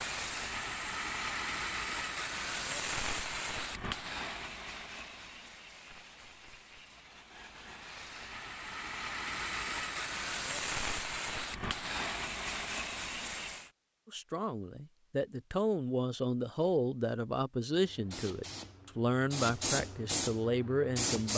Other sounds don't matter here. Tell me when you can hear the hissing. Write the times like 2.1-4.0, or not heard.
0.0-13.7, 17.9-21.3.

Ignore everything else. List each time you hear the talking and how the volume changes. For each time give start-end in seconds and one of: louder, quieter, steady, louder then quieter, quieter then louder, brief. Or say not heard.
14.1-21.3 steady.